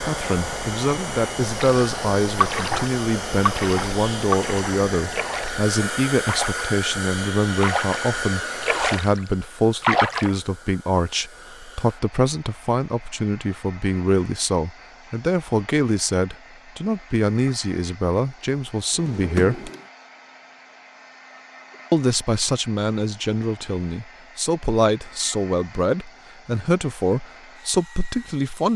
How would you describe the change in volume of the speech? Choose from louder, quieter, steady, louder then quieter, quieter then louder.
steady.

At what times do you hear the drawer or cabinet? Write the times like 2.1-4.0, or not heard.
18.9-19.9.